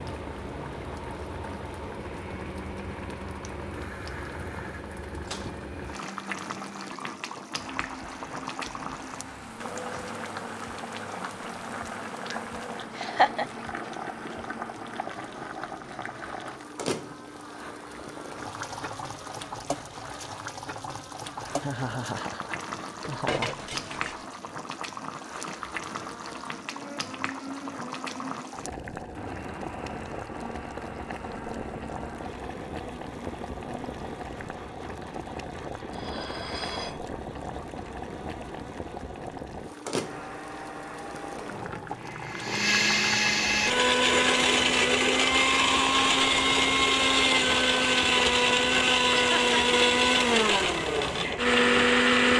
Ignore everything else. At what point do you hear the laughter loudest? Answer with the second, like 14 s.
13 s.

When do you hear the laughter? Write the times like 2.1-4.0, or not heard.
12.9-13.4, 21.6-23.6, 49.1-49.6.